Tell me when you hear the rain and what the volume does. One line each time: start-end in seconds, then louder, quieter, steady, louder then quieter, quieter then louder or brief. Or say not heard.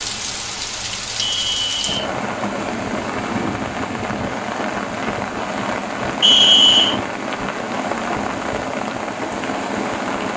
0.0-10.3 steady.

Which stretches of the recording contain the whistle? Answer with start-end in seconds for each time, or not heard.
1.2-2.0, 6.2-7.0.